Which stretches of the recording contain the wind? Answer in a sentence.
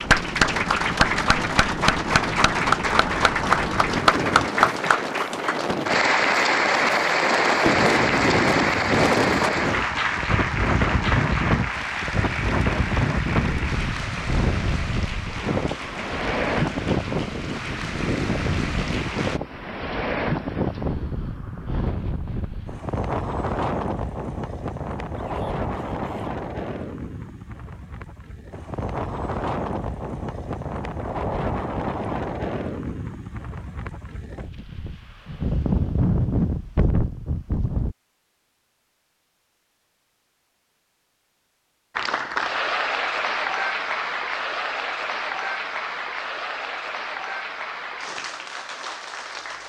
You can hear the wind from 0.0 to 38.0 s.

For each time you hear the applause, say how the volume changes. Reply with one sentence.
The applause can be heard from 0.0 to 19.4 s, getting quieter; and from 42.0 to 49.6 s, getting quieter.